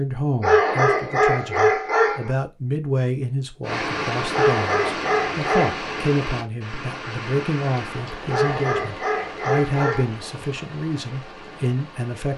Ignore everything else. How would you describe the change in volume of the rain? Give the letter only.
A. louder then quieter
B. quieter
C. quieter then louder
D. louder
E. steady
B.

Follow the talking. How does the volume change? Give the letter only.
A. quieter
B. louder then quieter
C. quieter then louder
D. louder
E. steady
E.